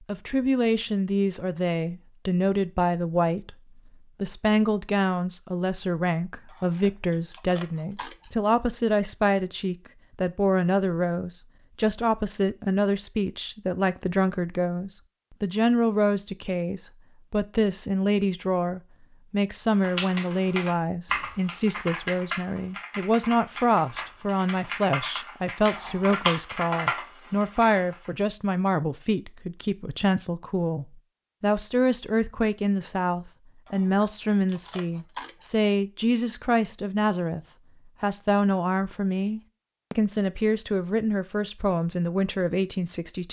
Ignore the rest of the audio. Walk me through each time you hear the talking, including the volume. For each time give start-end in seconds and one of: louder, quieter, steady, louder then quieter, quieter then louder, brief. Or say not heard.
0.0-43.2 steady.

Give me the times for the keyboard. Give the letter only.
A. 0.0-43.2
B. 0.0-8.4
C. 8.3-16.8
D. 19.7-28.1
D.